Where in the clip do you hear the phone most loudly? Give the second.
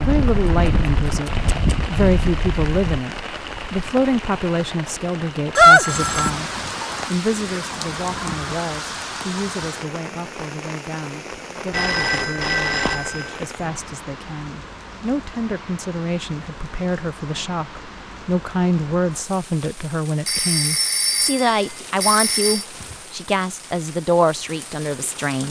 6 s.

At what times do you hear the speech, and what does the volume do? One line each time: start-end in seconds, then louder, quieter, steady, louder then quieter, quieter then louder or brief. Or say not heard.
0.0-25.4 quieter then louder.